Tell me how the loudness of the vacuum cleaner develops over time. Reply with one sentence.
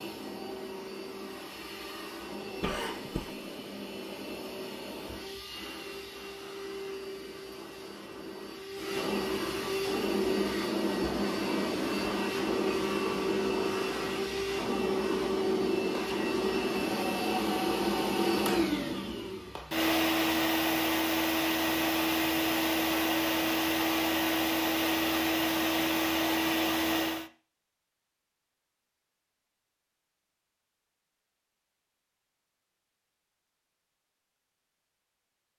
The volume of the vacuum cleaner goes up.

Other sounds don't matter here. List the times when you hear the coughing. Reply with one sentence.
You can hear the coughing from 2.6 to 3.4 s.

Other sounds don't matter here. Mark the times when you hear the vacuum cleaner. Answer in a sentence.
You can hear the vacuum cleaner from 0.0 to 27.3 s.